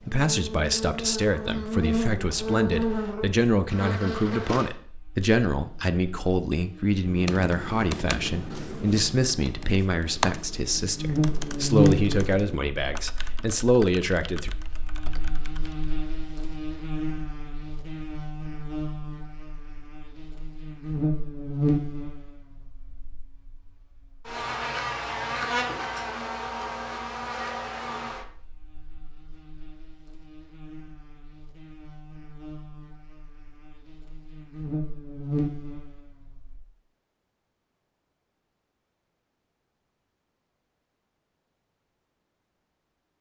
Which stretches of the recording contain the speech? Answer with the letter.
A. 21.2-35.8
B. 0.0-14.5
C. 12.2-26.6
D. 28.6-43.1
B.